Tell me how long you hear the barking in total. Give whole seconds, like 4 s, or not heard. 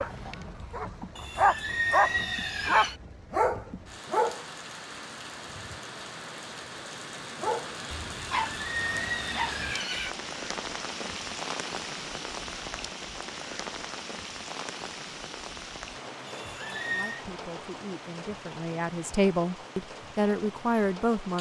7 s.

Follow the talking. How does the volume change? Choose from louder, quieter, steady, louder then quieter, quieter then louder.
louder.